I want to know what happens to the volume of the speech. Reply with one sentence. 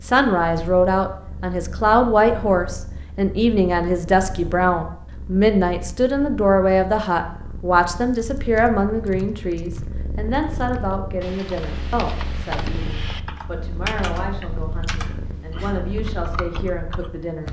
The volume of the speech goes down.